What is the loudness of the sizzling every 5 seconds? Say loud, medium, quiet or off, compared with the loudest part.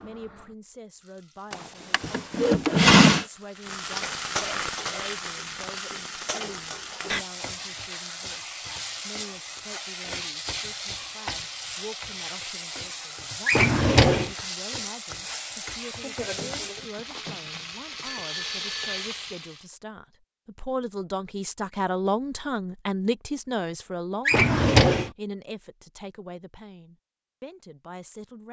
loud, loud, loud, loud, off, off.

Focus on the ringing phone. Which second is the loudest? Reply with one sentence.
The loudest moment of the ringing phone is at 19 seconds.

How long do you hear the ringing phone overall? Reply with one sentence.
You can hear the ringing phone for 3 seconds altogether.